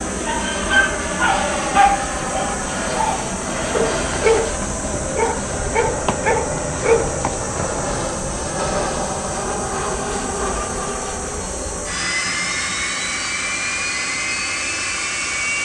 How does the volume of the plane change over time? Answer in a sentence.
The volume of the plane stays about the same.